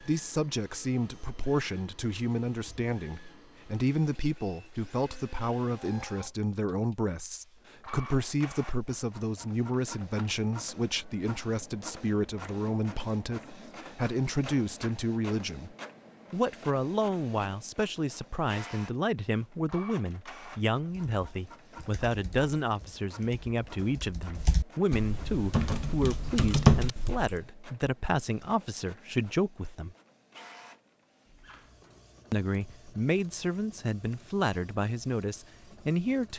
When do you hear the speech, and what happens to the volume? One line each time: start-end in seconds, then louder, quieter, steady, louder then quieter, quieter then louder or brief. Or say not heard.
0.0-29.9 steady
32.3-36.3 steady.